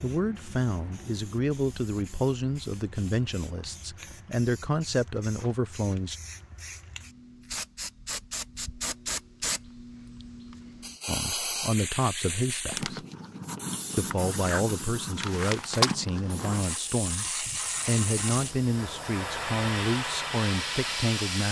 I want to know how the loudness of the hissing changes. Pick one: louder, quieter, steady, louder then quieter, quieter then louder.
louder.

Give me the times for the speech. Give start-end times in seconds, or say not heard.
0.0-6.2, 11.1-13.1, 13.9-21.4.